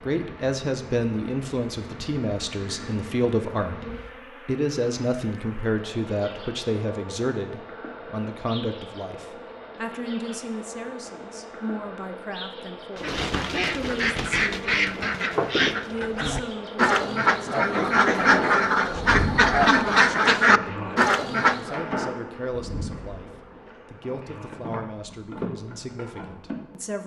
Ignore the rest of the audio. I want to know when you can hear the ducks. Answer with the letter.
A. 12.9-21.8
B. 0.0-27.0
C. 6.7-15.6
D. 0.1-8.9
A.